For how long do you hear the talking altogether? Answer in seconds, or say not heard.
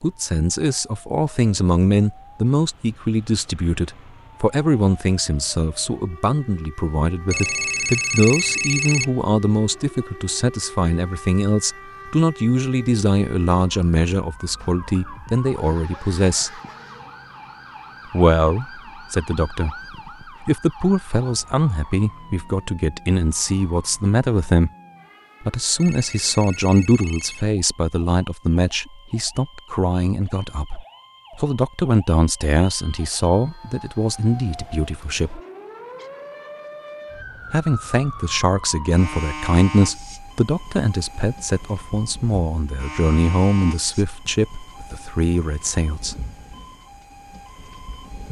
41 s.